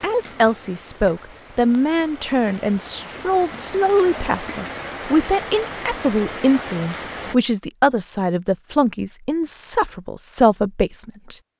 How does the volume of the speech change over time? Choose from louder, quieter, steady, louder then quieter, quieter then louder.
steady.